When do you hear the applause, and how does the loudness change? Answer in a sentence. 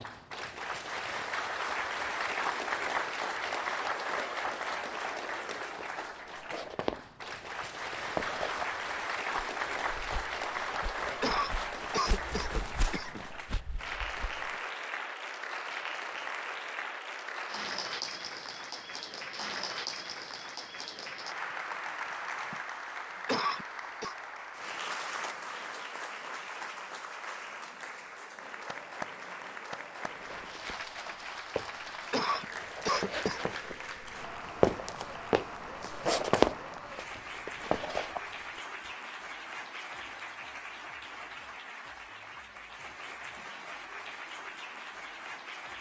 You can hear the applause from 0.0 to 45.7 s, getting quieter.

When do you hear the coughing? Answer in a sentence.
You can hear the coughing from 11.2 to 13.2 s, from 23.2 to 24.1 s and from 32.1 to 33.5 s.